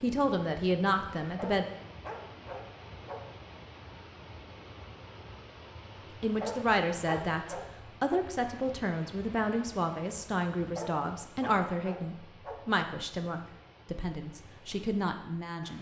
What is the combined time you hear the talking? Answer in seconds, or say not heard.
11 s.